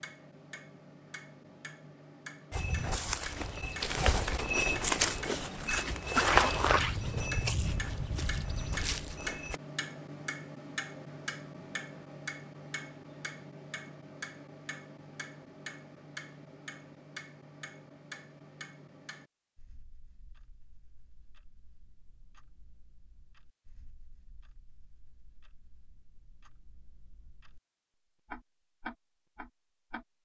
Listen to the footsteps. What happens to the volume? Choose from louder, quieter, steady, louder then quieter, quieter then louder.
louder then quieter.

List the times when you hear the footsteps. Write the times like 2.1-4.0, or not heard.
2.5-9.6.